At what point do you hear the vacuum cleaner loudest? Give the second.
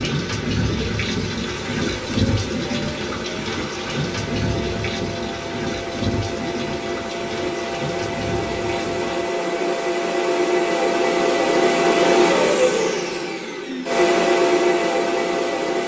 12 s.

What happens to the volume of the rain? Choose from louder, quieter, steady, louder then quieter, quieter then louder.
quieter.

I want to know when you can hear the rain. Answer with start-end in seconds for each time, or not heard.
0.0-9.3.